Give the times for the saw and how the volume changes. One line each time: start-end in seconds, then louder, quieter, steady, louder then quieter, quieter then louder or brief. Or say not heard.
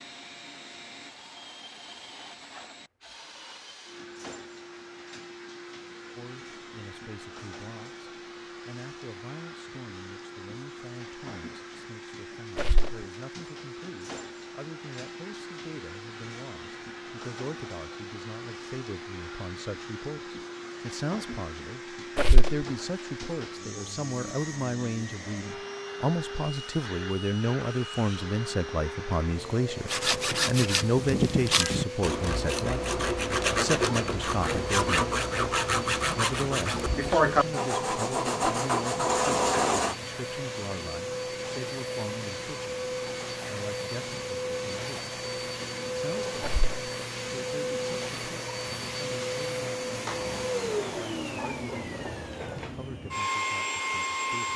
29.9-40.0 steady.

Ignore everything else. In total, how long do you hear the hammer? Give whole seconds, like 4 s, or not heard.
not heard.